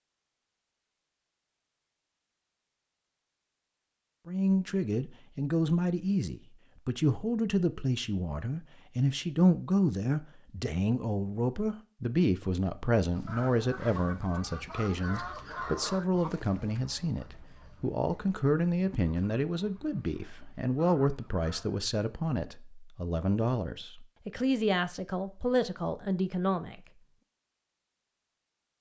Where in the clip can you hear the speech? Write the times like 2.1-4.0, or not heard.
4.2-26.8.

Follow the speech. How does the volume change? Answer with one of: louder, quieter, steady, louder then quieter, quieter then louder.
steady.